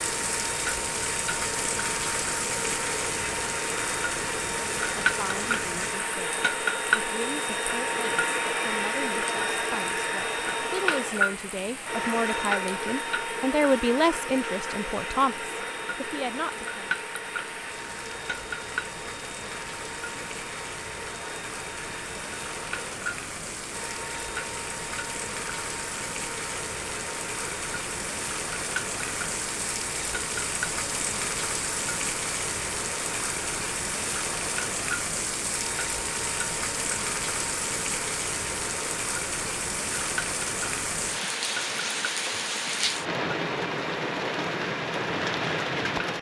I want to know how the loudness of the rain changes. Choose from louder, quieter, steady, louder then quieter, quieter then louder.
quieter then louder.